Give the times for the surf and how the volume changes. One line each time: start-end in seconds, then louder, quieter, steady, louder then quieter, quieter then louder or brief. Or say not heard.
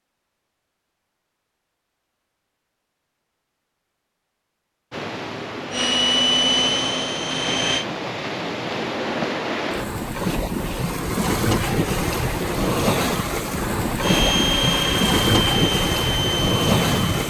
4.9-17.2 louder.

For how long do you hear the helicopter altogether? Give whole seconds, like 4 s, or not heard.
5 s.